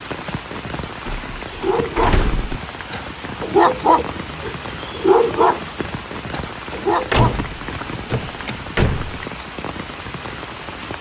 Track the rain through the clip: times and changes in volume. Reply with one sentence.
You can hear the rain from 0.0 to 10.9 s, at a steady volume.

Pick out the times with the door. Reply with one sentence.
The door can be heard from 1.1 to 2.5 s and from 7.1 to 9.2 s.